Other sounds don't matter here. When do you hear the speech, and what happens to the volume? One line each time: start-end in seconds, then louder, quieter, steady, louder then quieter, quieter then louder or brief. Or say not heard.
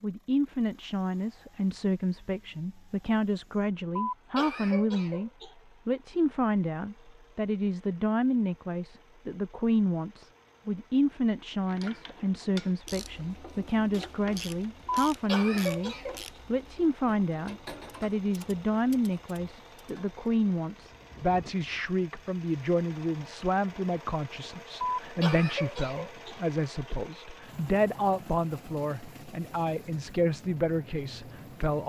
0.0-31.8 steady.